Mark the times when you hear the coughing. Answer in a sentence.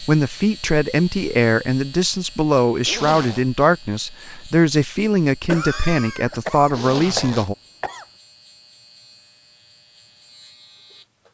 The coughing can be heard from 5.5 to 8.1 s.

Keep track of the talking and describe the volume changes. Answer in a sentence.
The loudness of the talking stays about the same.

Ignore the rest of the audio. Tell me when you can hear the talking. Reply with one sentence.
The talking can be heard from 0.0 to 7.5 s.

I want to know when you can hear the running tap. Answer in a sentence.
You can't hear the running tap here.